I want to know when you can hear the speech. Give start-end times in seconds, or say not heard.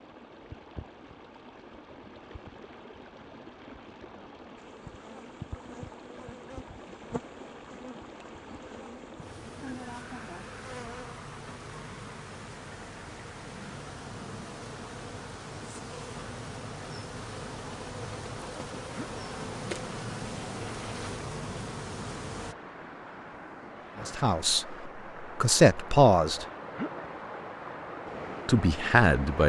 24.0-26.4, 28.4-29.4.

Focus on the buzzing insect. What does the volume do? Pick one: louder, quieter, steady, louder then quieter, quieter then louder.
louder.